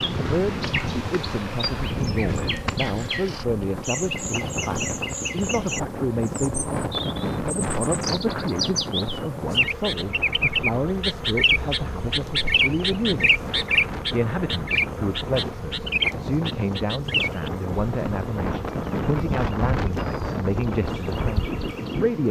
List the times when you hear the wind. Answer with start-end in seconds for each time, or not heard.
0.0-22.2.